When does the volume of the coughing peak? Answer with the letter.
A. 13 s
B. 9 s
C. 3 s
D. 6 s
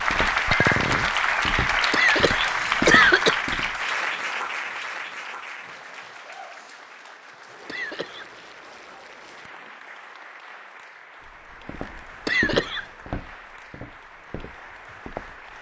C.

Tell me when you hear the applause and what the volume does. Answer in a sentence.
The applause can be heard from 0.0 to 15.5 s, getting quieter.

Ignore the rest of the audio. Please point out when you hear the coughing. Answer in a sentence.
The coughing can be heard from 1.9 to 3.4 s, from 7.7 to 8.4 s and from 12.2 to 12.8 s.